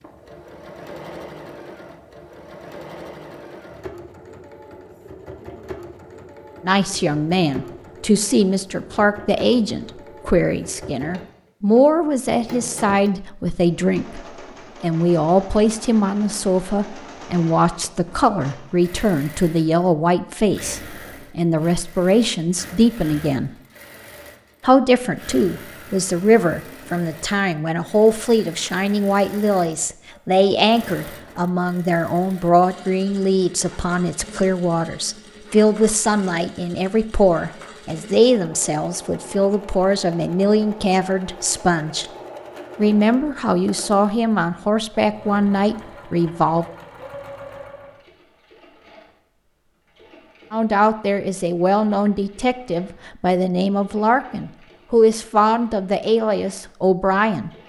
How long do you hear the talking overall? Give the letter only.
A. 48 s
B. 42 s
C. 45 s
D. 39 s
C.